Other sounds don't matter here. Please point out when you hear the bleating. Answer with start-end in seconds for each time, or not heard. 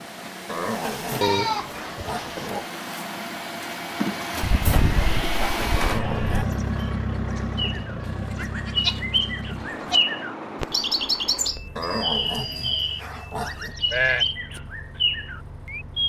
1.2-2.5, 4.4-6.5, 8.1-10.0, 13.4-14.3.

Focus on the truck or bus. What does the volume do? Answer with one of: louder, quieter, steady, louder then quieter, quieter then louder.
louder then quieter.